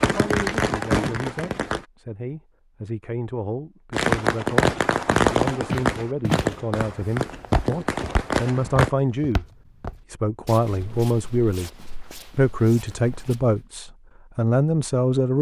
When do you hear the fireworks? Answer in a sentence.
You can hear the fireworks from 0.0 to 1.9 s and from 3.9 to 8.9 s.